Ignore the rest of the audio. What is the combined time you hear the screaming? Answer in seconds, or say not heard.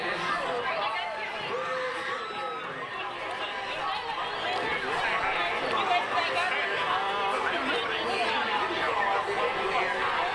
2 s.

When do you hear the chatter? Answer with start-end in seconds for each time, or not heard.
0.0-10.3.